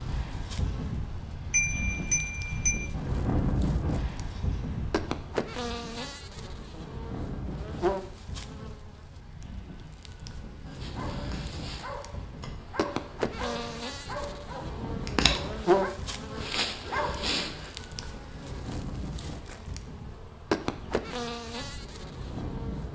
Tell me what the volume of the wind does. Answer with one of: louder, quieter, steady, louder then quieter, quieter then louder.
quieter.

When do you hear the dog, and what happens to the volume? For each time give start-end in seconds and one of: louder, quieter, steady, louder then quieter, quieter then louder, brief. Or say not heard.
10.7-17.7 louder.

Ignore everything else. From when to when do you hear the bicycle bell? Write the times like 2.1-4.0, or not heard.
1.5-2.9.